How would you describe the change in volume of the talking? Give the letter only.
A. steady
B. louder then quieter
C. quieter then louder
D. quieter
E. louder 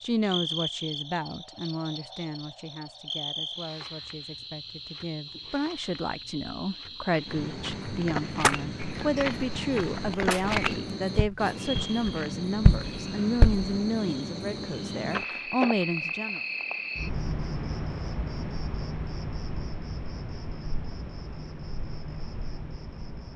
E.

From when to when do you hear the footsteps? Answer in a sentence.
You can hear the footsteps from 7.0 to 13.7 s.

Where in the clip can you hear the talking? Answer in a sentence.
The talking can be heard from 0.0 to 16.4 s.